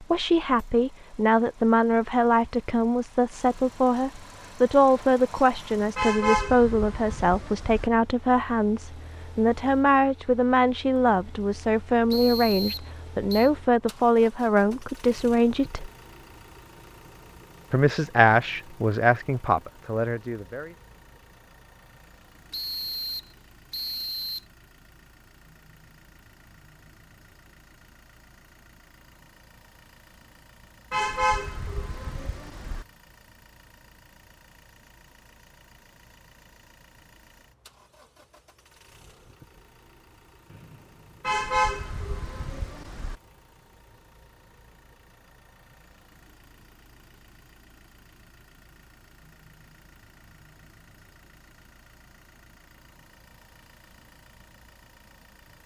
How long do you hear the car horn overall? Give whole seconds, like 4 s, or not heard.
6 s.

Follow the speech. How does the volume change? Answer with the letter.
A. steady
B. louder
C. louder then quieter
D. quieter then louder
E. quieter
A.